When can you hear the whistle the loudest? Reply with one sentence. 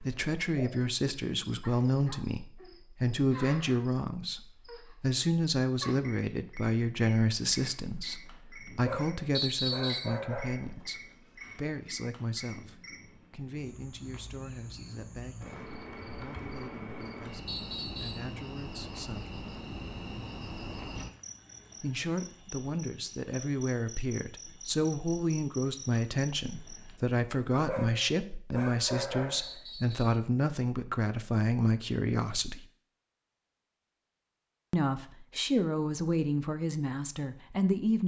The volume of the whistle peaks at 10 seconds.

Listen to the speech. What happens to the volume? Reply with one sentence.
The volume of the speech goes down, then up.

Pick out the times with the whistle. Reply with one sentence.
The whistle can be heard from 9.3 to 10.2 s, from 17.4 to 18.3 s and from 29.4 to 30.2 s.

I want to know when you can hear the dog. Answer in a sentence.
You can hear the dog from 8.8 to 10.8 s and from 27.6 to 29.6 s.